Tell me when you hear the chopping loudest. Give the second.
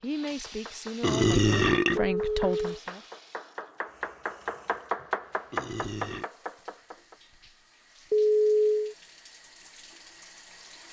5 s.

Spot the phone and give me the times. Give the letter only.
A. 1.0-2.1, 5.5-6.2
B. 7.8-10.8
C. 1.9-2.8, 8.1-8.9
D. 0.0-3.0
C.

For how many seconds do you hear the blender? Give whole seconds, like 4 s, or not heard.
not heard.